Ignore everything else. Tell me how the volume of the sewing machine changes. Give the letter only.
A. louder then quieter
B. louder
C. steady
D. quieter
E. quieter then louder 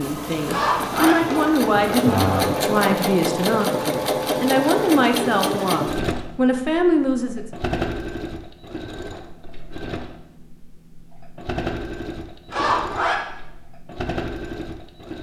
D.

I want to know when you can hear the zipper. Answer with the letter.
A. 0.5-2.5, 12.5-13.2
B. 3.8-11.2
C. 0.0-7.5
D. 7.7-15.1
A.